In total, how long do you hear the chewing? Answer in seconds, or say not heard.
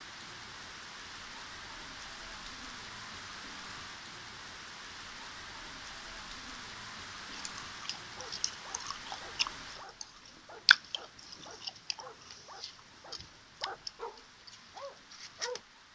8 s.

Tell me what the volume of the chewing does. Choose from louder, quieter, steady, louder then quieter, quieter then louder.
louder then quieter.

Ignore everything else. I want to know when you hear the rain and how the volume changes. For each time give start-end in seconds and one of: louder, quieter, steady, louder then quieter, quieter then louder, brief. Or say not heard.
0.0-15.8 quieter.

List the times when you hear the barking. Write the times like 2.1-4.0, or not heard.
8.0-15.6.